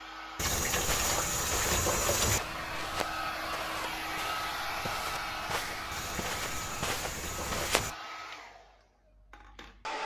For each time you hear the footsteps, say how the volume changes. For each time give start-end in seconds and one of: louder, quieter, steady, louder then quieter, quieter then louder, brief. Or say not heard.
0.7-8.0 quieter then louder.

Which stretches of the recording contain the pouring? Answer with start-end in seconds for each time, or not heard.
0.3-2.4, 5.9-8.0.